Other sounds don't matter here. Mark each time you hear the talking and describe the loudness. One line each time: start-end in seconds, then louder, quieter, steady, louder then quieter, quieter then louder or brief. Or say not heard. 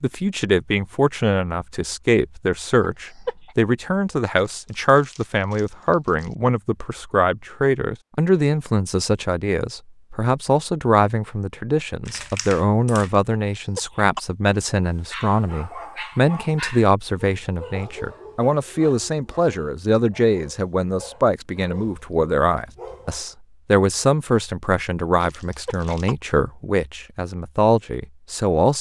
0.0-28.7 steady.